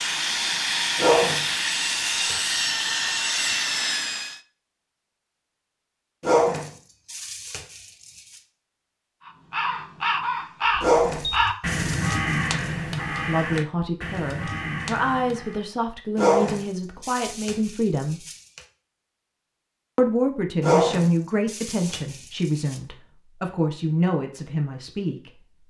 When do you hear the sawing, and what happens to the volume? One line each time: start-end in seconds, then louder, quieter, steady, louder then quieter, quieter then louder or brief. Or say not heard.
0.0-4.4 steady.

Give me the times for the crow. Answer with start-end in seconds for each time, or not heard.
9.2-15.7.